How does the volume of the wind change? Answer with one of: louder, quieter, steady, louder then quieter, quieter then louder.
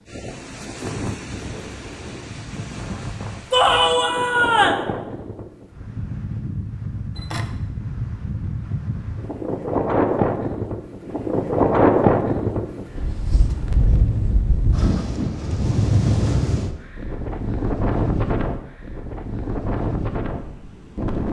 louder then quieter.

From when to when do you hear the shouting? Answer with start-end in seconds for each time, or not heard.
3.5-4.8.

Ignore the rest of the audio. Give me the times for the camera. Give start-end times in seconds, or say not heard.
7.2-7.6.